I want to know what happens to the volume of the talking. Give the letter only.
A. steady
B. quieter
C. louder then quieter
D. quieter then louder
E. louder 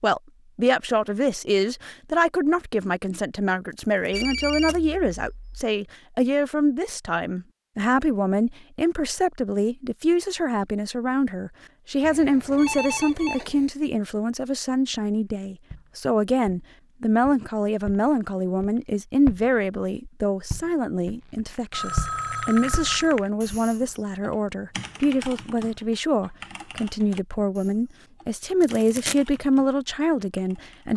A.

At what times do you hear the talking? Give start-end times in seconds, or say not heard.
0.0-30.9.